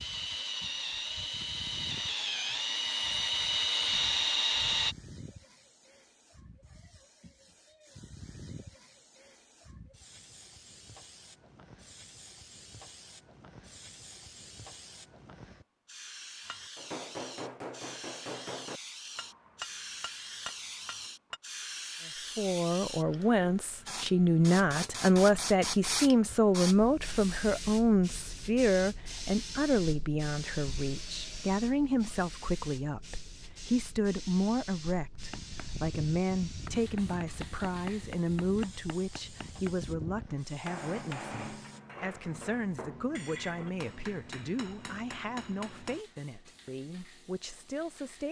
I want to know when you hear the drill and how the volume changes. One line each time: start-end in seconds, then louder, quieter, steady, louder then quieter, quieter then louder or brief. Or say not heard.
0.0-5.0 louder.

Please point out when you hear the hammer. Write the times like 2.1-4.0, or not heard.
16.4-21.4, 35.1-46.0.